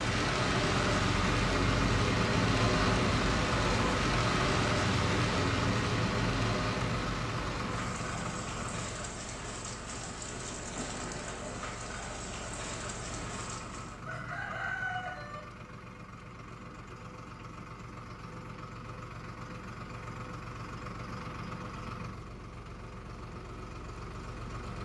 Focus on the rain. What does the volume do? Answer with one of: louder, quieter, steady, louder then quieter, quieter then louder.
quieter.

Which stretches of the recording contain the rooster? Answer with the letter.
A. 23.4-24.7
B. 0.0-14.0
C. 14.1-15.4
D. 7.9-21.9
C.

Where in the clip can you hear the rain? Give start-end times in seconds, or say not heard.
0.0-14.0.